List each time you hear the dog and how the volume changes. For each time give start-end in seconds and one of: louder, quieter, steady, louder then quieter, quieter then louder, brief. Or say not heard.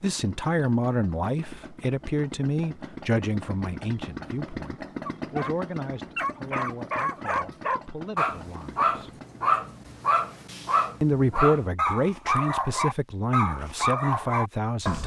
5.0-5.5 brief
6.2-15.0 steady.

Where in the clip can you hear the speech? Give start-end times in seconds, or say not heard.
0.0-9.1, 11.0-15.0.